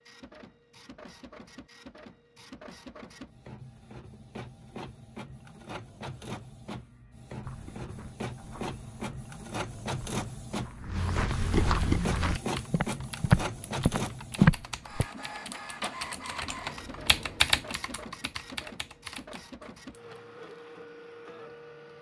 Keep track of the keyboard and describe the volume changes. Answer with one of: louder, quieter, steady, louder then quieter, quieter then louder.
louder then quieter.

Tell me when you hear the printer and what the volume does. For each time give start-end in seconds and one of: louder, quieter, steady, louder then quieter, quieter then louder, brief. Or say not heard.
0.0-21.9 louder then quieter.